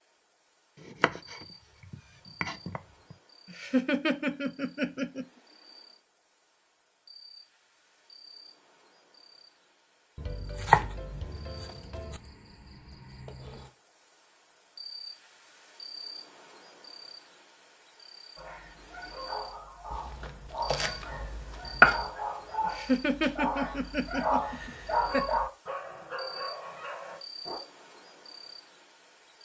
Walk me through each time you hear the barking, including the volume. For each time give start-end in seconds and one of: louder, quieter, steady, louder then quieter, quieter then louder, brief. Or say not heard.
18.4-27.6 louder then quieter.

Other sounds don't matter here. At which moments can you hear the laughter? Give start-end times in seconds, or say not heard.
3.5-5.2, 22.6-25.4.